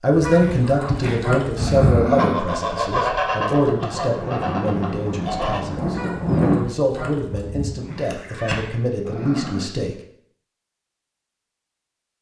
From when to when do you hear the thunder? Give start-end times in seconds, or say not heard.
3.4-6.7.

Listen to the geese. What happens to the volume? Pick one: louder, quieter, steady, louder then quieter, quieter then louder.
quieter.